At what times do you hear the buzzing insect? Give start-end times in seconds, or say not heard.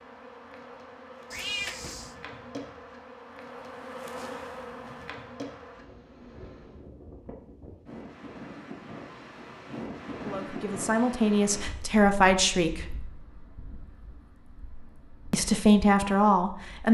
0.0-6.8.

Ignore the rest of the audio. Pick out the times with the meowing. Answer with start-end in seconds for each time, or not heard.
1.3-2.1.